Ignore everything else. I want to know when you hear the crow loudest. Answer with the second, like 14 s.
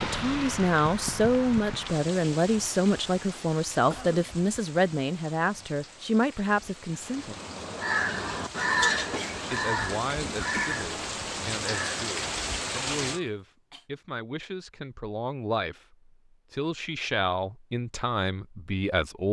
9 s.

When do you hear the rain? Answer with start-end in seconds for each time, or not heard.
0.0-13.2.